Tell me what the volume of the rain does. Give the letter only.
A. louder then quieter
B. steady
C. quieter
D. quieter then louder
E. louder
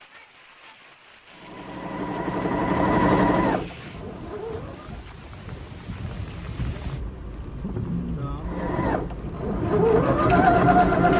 E.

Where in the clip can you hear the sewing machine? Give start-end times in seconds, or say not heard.
1.3-5.0, 8.4-11.1.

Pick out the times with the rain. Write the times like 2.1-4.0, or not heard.
0.0-11.1.